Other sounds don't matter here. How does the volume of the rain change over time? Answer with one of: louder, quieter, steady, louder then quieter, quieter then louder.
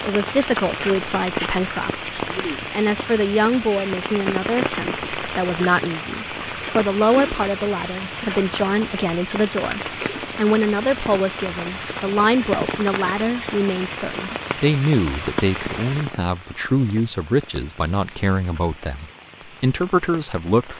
quieter.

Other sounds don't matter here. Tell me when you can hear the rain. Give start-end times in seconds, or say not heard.
0.0-20.7.